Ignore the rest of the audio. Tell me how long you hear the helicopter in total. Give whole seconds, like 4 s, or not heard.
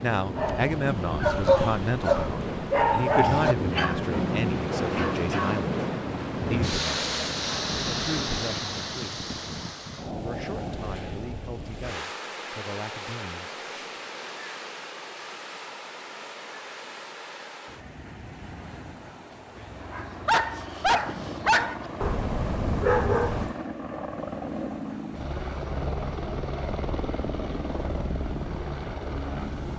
10 s.